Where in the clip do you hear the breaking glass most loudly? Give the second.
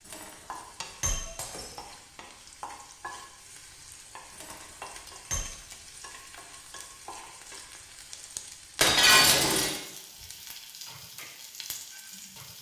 9 s.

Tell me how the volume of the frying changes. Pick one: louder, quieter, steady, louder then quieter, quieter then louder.
steady.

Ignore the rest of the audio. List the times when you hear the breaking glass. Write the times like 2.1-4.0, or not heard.
0.1-1.9, 4.3-5.5, 8.8-9.8.